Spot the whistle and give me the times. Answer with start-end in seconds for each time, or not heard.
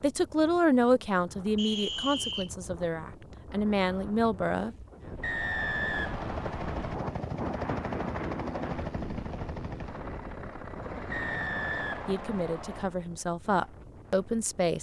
1.6-2.5, 5.2-7.0, 11.1-12.8.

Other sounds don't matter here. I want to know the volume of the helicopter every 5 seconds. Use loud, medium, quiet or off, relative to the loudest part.
off, loud, loud.